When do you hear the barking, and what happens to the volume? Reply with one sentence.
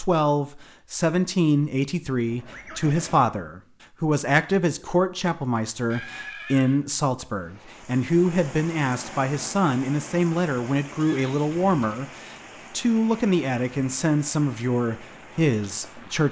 You can't hear the barking here.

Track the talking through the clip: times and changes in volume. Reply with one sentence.
You can hear the talking from 0.0 to 16.2 s, at a steady volume.